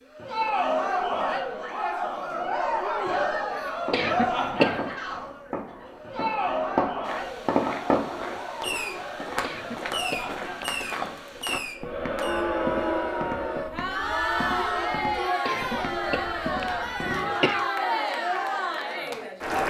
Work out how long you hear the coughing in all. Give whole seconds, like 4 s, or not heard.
5 s.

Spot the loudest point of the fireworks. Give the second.
8 s.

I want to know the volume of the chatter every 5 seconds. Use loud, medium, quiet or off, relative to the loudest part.
loud, medium, loud, loud.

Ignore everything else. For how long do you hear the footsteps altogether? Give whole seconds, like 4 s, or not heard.
10 s.